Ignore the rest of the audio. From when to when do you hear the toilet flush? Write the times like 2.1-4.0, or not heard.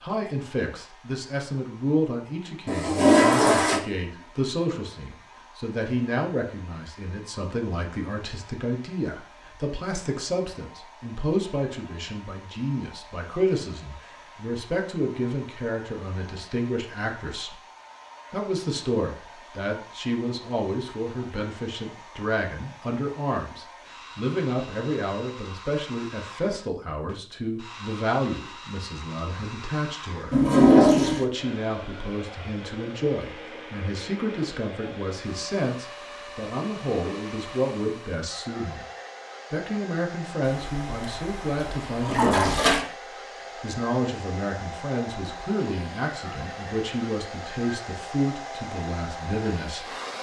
2.6-3.8, 30.3-31.2, 40.5-42.8.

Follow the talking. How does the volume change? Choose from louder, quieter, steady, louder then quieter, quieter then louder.
steady.